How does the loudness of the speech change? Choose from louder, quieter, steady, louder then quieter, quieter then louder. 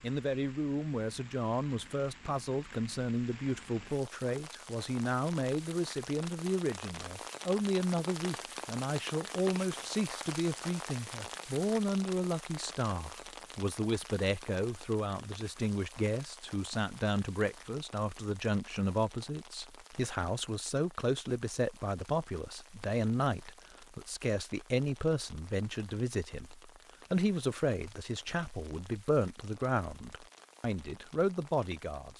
steady.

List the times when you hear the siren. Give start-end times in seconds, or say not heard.
not heard.